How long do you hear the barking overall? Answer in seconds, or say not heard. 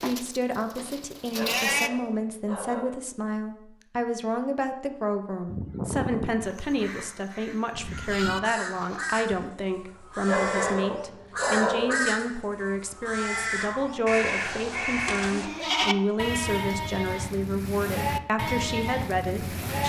3 s.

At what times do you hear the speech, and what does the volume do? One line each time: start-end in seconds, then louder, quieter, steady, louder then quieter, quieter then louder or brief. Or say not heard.
0.0-19.8 steady.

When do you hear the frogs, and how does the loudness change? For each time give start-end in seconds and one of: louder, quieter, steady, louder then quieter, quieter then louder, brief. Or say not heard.
not heard.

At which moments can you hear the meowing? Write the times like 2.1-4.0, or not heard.
not heard.